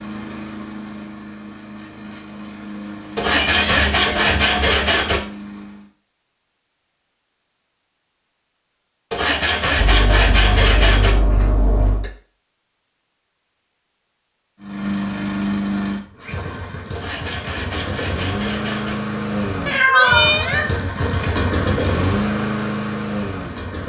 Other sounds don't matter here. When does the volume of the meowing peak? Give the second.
20 s.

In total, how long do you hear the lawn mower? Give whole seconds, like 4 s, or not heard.
15 s.